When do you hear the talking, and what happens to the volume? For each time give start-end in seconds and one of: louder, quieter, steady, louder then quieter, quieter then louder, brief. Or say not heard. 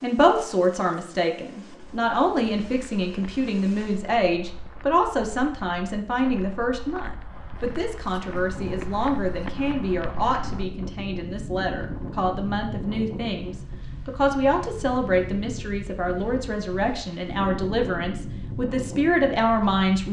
0.0-20.0 steady.